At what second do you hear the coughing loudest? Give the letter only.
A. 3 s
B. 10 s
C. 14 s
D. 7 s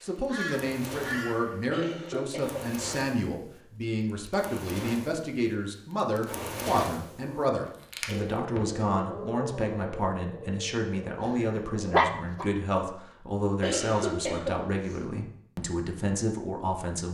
C.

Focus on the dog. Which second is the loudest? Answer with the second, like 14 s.
12 s.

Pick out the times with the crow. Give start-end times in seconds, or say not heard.
0.0-1.6.